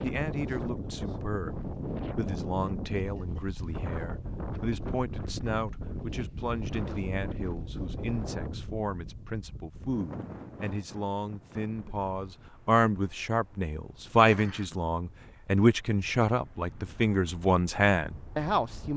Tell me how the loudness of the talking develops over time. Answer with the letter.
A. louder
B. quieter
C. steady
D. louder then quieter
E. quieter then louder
A.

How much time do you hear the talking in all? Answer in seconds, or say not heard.
19 s.